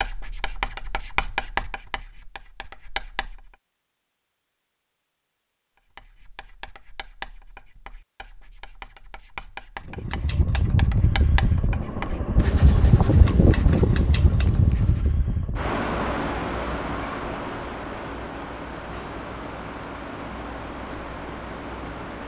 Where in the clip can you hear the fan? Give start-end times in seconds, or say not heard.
9.8-22.2.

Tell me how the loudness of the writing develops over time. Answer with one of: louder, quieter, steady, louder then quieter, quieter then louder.
quieter then louder.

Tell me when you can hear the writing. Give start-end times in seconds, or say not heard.
0.0-3.5, 5.9-15.2.